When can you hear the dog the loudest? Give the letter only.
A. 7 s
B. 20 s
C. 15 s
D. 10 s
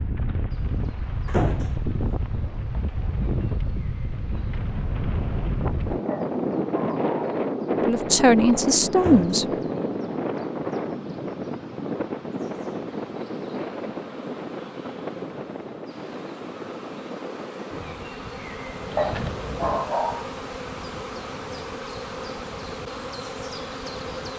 B.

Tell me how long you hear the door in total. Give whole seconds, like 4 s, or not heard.
2 s.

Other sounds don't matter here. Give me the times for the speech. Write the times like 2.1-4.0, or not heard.
7.8-9.4.